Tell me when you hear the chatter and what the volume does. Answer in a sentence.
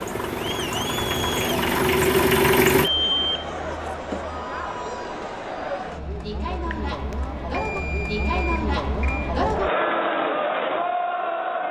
The chatter can be heard from 0.0 to 11.6 s, getting louder.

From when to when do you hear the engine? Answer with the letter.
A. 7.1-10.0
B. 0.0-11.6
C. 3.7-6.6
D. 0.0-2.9
D.